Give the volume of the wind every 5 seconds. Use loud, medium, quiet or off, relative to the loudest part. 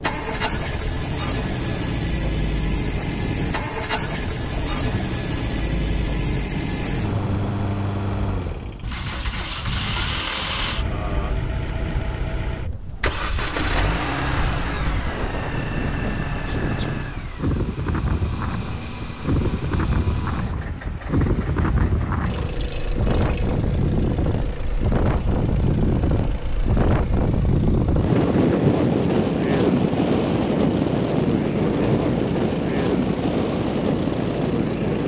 quiet, quiet, quiet, medium, medium, loud, loud.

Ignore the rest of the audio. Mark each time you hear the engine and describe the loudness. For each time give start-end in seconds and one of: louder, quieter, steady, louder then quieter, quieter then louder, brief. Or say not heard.
0.0-35.0 quieter.